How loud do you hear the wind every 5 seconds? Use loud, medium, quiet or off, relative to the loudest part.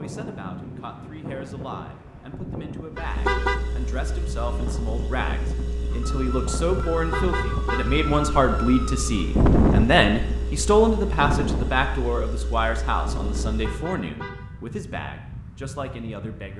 medium, loud, medium, quiet.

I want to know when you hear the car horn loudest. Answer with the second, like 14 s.
3 s.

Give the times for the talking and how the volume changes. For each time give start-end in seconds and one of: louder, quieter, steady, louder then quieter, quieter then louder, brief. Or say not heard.
0.0-16.5 louder then quieter.